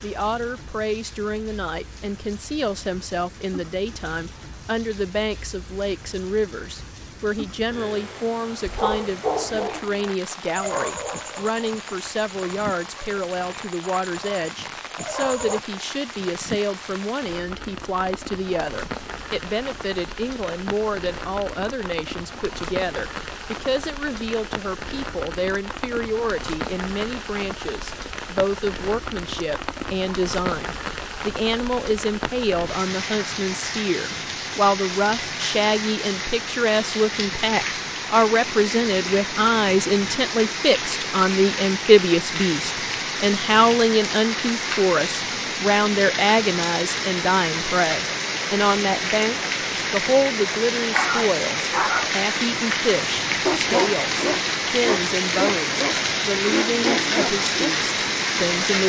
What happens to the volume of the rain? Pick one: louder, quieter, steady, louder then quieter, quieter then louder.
louder.